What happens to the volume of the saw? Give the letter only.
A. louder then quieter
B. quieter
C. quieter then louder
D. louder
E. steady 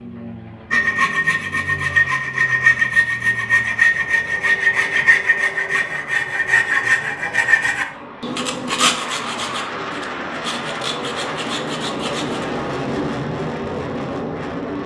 B.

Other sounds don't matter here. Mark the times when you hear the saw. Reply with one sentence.
You can hear the saw from 0.7 to 12.4 s.